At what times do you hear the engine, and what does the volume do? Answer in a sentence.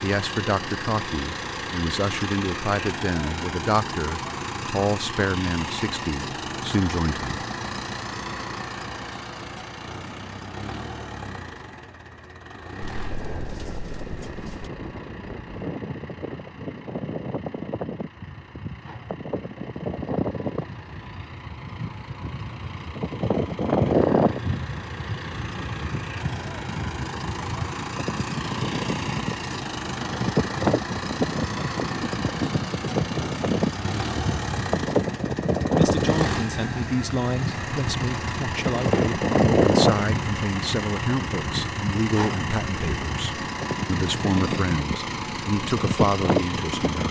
You can hear the engine from 0.0 to 47.0 s, getting quieter then louder.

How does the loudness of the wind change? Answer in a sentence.
The volume of the wind goes up, then down.